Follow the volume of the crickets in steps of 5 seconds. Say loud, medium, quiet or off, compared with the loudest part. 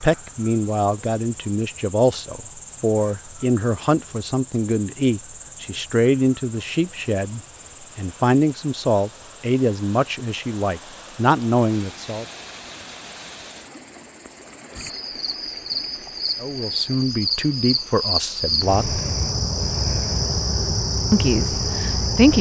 quiet, quiet, quiet, loud, loud.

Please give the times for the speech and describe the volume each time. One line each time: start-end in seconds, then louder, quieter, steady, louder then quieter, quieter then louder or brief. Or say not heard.
0.0-12.2 steady
16.4-19.0 brief
21.1-22.3 brief.